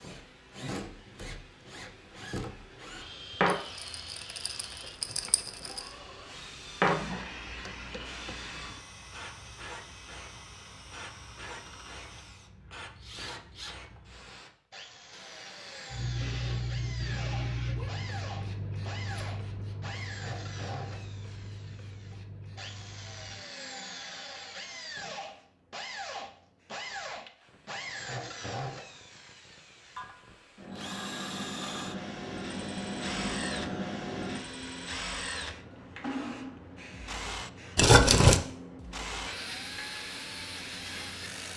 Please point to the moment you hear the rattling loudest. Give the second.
38 s.